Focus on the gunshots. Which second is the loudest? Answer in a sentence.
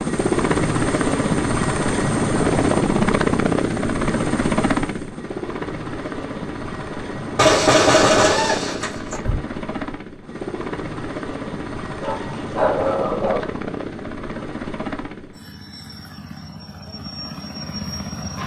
The volume of the gunshots peaks at 8 seconds.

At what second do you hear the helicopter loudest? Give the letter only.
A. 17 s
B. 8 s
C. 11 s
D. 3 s
D.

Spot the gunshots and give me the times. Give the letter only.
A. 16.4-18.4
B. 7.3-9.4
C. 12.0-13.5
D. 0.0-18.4
B.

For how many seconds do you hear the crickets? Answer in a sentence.
The crickets can't be heard in this clip.